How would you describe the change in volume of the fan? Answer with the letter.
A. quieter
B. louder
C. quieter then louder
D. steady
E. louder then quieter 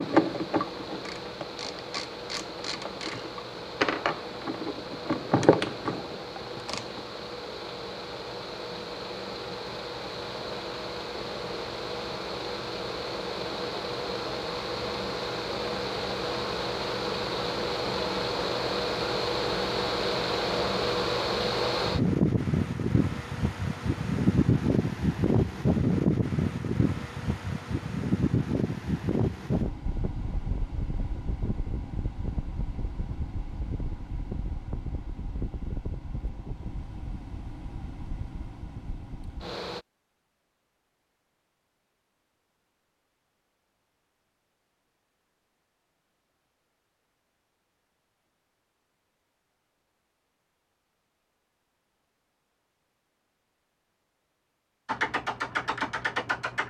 E.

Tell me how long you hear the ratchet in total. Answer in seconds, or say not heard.
9 s.